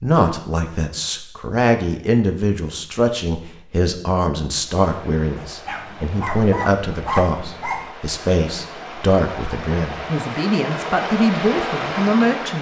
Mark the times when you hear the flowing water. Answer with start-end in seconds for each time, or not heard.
4.8-12.5.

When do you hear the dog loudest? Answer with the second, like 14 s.
7 s.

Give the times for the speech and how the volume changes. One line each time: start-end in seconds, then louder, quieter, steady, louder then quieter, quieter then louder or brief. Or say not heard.
0.0-12.5 steady.